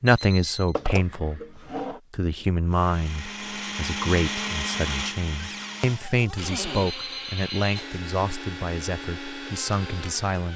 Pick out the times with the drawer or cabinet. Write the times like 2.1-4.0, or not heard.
0.8-2.0, 5.4-6.9.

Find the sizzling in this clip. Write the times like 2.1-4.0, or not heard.
not heard.